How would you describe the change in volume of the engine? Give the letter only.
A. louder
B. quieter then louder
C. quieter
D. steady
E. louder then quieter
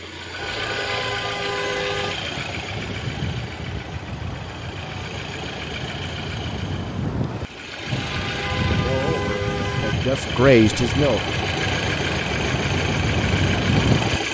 B.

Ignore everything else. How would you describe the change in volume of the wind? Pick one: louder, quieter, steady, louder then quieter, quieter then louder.
louder.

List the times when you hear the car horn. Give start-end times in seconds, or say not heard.
0.3-2.1, 7.9-9.9.